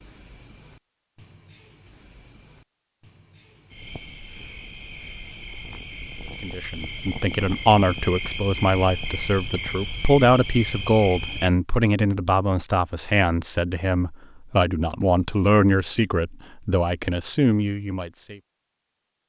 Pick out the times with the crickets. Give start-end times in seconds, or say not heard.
0.0-11.5.